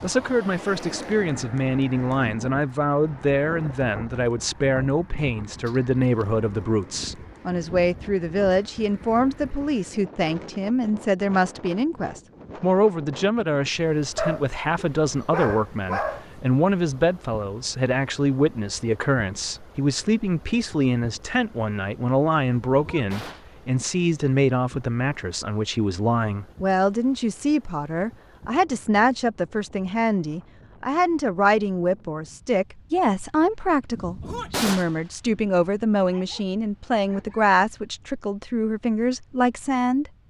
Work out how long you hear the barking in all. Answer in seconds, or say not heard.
4 s.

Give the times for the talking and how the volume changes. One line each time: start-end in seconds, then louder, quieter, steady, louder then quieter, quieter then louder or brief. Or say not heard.
0.0-40.1 steady.